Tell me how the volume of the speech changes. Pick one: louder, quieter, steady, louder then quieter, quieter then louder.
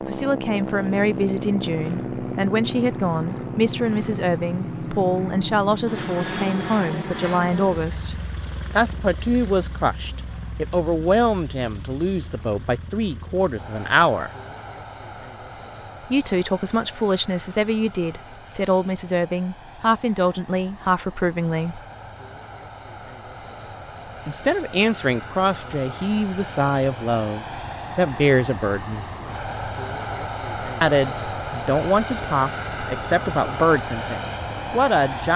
steady.